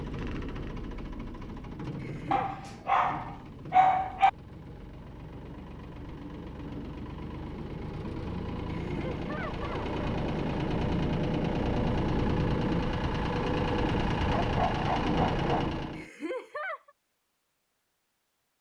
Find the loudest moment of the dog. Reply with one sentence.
The volume of the dog peaks at 4 seconds.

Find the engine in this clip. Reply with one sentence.
You can hear the engine from 0.0 to 16.1 s.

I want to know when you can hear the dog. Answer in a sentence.
The dog can be heard from 2.3 to 4.3 s and from 14.3 to 15.7 s.